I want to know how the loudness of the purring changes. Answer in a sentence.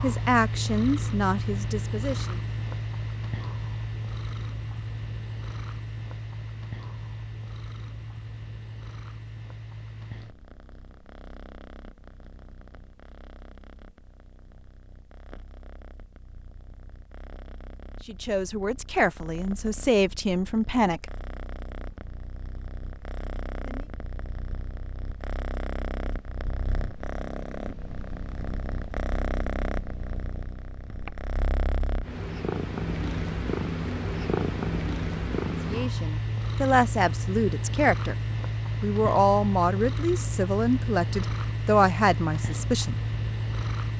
The volume of the purring goes down, then up.